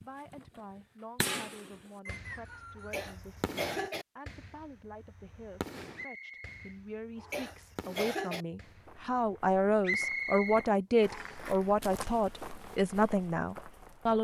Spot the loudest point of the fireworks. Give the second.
1 s.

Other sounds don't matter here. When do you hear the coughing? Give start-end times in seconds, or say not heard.
2.9-4.0, 7.3-8.4.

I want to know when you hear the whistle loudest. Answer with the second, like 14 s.
10 s.